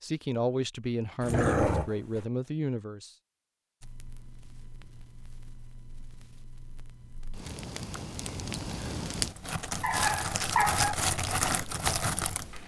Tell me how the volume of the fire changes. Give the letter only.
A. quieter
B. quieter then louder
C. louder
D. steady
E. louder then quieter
C.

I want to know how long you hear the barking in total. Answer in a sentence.
You can hear the barking for 2 seconds altogether.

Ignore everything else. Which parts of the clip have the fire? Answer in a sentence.
The fire can be heard from 3.8 to 12.6 s.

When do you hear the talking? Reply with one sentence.
The talking can be heard from 0.0 to 3.1 s.